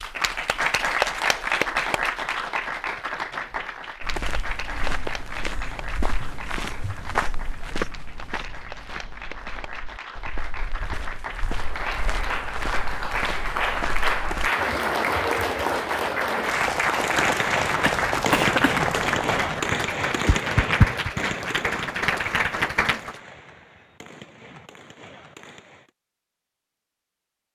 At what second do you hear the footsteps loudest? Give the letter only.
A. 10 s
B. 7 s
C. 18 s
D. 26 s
B.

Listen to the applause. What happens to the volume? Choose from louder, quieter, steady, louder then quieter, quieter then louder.
quieter then louder.